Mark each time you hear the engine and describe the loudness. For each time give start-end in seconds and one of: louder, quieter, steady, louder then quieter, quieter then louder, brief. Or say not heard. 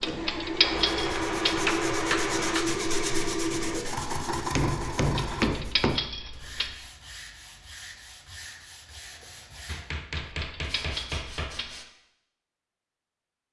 0.0-5.5 steady.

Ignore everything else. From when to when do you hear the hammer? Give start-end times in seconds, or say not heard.
0.6-2.7, 4.5-6.0, 9.7-11.7.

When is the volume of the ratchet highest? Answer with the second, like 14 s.
1 s.